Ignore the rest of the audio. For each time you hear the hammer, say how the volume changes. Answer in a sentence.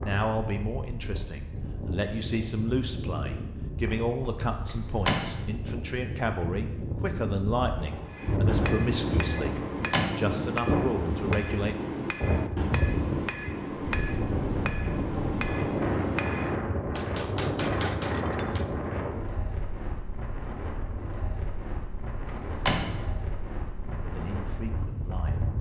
The hammer can be heard from 8.1 to 18.6 s, at a steady volume.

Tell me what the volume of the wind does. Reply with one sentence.
The volume of the wind goes up, then down.